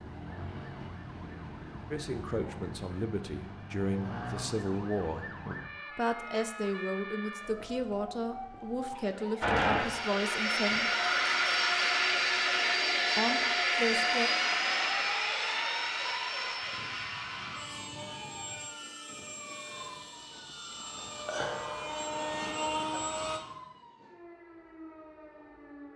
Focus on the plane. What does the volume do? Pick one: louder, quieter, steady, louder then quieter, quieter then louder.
quieter then louder.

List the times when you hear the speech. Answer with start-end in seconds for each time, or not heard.
1.9-5.2, 6.0-10.9, 13.2-14.3.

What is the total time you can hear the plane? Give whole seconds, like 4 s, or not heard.
14 s.